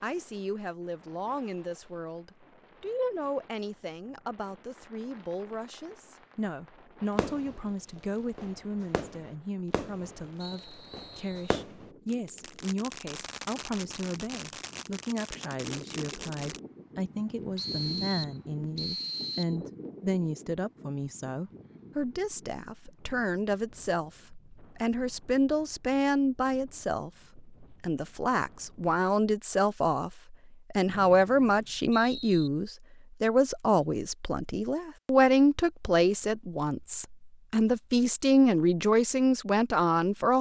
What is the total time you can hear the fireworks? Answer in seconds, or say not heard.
12 s.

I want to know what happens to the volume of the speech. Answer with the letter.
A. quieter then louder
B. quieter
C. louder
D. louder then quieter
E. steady
C.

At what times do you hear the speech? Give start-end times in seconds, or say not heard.
0.0-40.3.